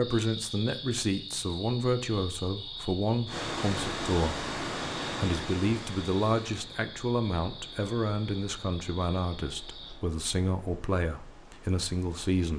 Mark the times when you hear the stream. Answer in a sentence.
The stream can be heard from 3.2 to 12.5 s.